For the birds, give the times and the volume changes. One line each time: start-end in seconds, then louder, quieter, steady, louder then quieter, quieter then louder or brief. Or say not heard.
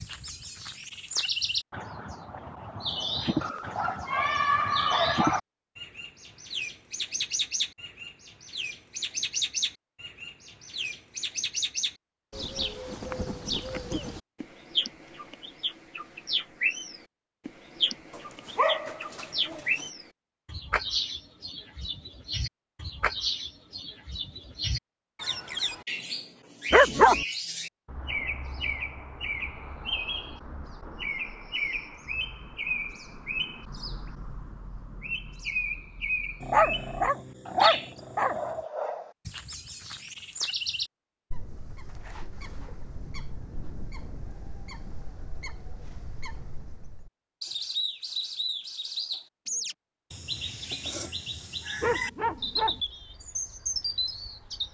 0.0-54.6 steady.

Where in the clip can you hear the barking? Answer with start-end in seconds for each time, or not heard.
3.4-5.4, 18.1-19.9, 26.7-27.2, 36.4-38.4, 51.8-52.8.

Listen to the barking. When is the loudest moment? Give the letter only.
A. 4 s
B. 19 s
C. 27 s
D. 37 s
C.